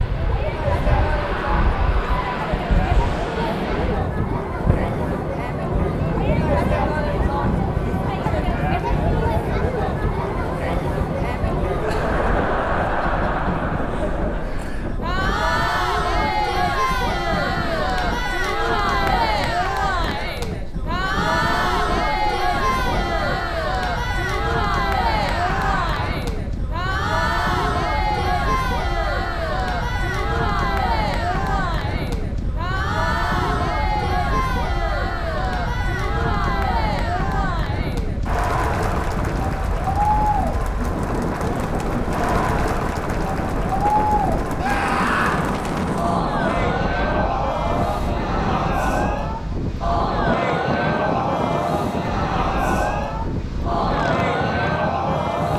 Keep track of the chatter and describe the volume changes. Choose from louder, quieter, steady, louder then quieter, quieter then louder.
steady.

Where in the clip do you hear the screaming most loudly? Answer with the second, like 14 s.
45 s.